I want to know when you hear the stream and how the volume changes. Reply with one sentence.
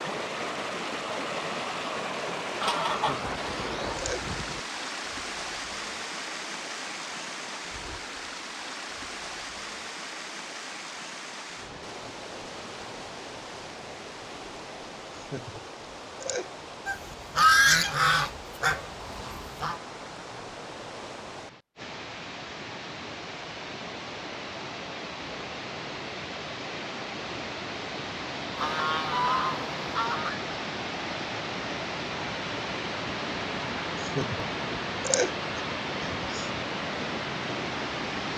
You can hear the stream from 0.0 to 38.3 s, getting quieter then louder.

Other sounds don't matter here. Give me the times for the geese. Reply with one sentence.
You can hear the geese from 2.6 to 4.6 s, from 16.9 to 19.8 s and from 28.6 to 30.4 s.